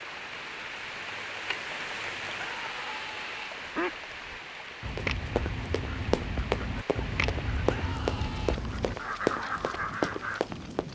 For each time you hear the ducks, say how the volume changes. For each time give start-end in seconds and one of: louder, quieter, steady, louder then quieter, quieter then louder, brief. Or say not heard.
3.6-10.4 steady.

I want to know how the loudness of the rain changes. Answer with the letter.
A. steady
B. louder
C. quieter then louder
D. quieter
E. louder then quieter
D.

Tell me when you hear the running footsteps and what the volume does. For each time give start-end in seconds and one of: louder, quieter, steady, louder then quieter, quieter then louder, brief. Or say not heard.
4.7-10.8 steady.